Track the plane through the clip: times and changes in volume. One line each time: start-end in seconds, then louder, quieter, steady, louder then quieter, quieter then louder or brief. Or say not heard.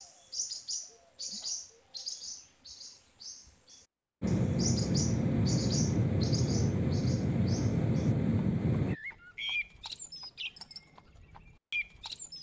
4.2-8.9 steady.